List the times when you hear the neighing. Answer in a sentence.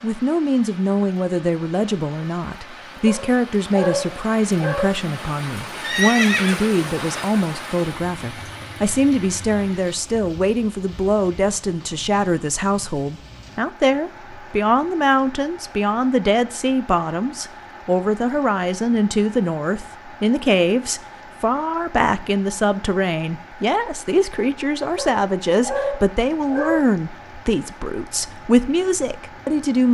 You can hear the neighing from 5.8 to 7.3 s.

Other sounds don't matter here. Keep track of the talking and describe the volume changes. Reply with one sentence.
The volume of the talking stays about the same.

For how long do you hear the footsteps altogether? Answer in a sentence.
The footsteps can't be heard in this clip.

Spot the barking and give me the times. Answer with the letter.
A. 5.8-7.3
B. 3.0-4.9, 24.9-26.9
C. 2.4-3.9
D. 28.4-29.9
B.